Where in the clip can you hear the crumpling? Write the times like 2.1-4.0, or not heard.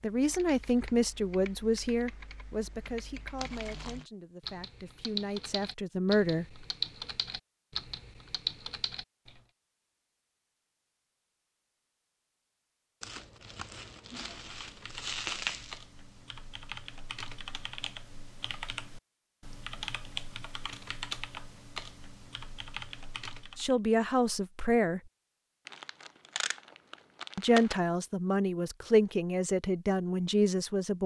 3.4-4.0, 13.0-15.8, 25.6-27.8.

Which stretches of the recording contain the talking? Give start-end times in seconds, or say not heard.
0.0-6.7, 23.6-25.0, 27.4-31.0.